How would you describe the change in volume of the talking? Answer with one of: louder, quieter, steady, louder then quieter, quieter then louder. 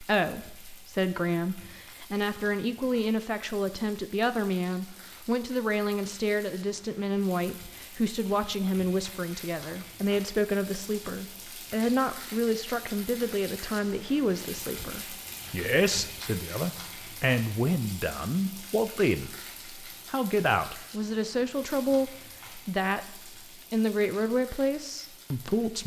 steady.